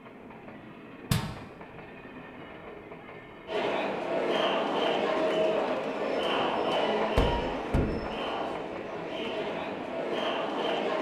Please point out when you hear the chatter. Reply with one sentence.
You can hear the chatter from 3.5 to 10.9 s.